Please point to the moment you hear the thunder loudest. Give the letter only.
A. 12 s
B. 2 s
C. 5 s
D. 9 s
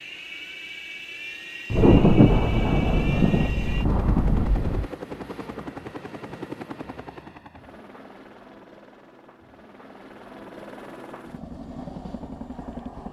B.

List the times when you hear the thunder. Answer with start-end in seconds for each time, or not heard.
1.7-4.8.